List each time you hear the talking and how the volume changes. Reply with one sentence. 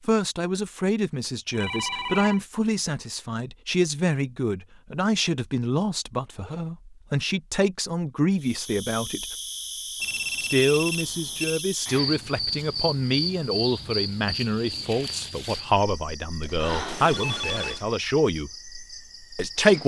The talking can be heard from 0.1 to 9.2 s, at a steady volume; from 10.4 to 18.5 s, at a steady volume; and briefly from 19.4 to 19.8 s.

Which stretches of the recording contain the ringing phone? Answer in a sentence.
You can hear the ringing phone from 1.5 to 2.4 s, from 10.0 to 11.7 s and from 16.6 to 17.9 s.